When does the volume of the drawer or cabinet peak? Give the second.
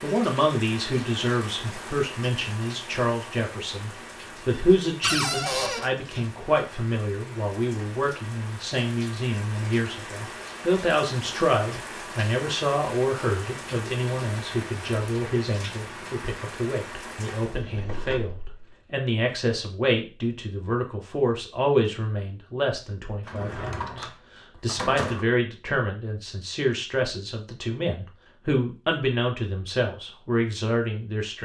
5 s.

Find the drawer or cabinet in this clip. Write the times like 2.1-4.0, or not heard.
5.0-5.9, 17.4-18.9, 23.2-25.2.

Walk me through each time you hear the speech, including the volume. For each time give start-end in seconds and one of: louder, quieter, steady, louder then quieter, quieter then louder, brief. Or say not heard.
0.0-31.3 steady.